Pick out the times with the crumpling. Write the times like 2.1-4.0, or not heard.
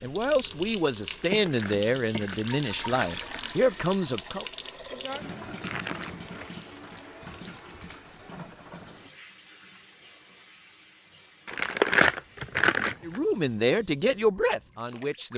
1.2-3.5, 5.6-6.5, 11.4-13.2.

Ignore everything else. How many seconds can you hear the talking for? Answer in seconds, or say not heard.
7 s.